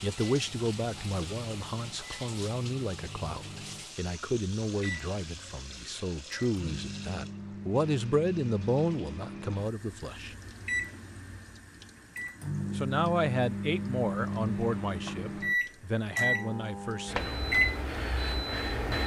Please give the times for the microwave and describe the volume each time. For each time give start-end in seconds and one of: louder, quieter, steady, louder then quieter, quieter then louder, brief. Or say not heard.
0.3-19.0 louder.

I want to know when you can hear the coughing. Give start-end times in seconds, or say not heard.
not heard.